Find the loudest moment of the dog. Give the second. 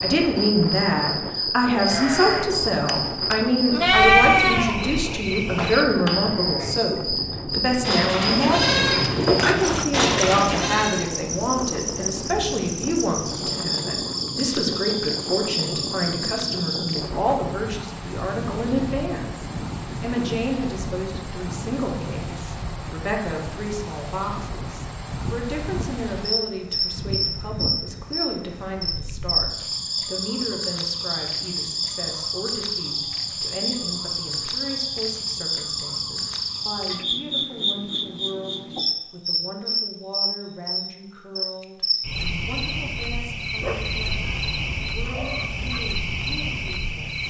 44 s.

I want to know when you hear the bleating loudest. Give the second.
4 s.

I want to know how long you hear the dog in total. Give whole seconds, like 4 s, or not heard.
2 s.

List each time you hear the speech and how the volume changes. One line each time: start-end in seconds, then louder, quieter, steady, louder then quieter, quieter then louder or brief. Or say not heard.
0.0-47.2 quieter.